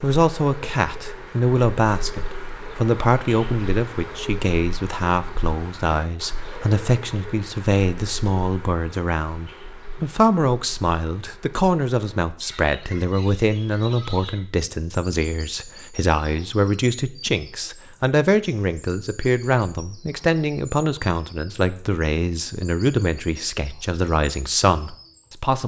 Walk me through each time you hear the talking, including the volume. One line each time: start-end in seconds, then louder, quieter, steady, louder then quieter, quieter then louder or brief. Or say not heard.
0.0-25.6 steady.